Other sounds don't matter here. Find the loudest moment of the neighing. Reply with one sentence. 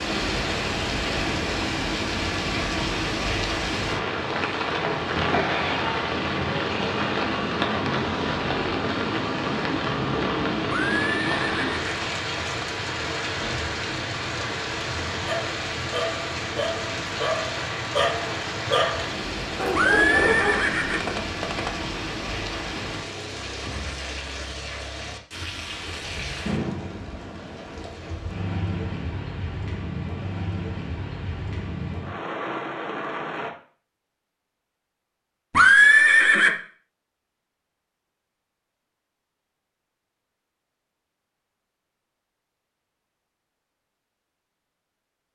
The loudest moment of the neighing is at 36 seconds.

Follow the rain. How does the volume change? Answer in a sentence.
The volume of the rain goes down.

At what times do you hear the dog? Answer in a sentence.
The dog can be heard from 15.2 to 20.6 s.